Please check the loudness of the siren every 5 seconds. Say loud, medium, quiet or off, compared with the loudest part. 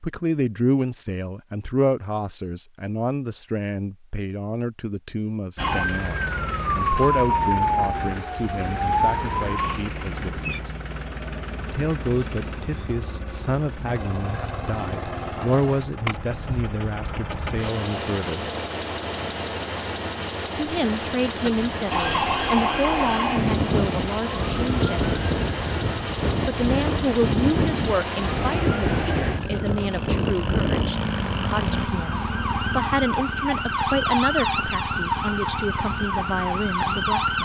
off, loud, off, off, loud, loud, loud, loud.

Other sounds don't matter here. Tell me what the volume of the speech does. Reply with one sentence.
The loudness of the speech stays about the same.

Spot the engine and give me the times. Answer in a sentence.
The engine can be heard from 5.5 to 31.9 s.